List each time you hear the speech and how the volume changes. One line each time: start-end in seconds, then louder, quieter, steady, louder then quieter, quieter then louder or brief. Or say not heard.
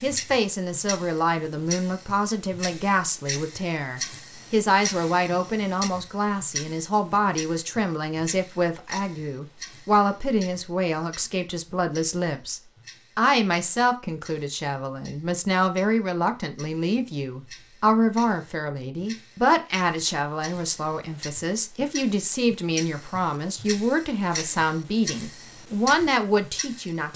0.0-27.1 steady.